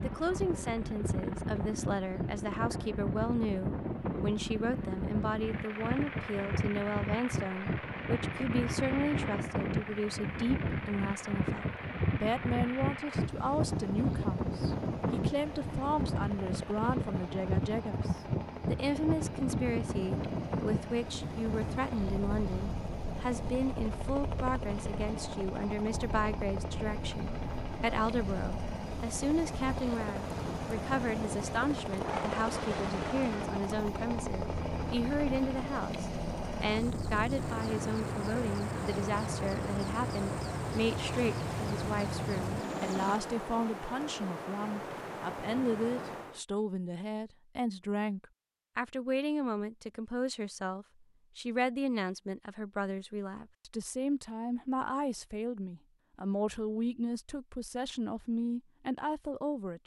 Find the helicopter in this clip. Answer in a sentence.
You can hear the helicopter from 0.0 to 43.2 s.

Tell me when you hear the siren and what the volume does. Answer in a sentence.
The siren can't be heard in this clip.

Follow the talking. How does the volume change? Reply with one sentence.
The volume of the talking stays about the same.